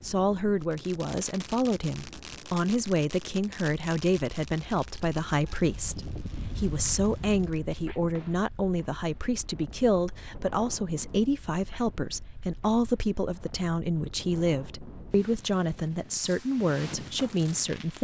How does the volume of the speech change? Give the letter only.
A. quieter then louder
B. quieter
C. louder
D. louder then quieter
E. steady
E.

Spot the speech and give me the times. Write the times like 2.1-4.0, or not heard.
0.0-17.9.